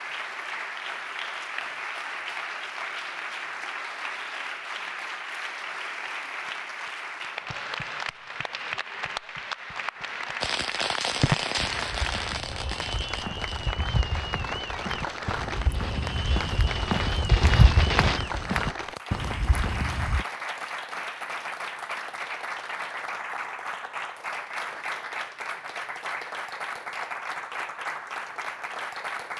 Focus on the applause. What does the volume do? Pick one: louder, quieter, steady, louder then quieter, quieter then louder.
steady.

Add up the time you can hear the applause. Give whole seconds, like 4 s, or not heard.
29 s.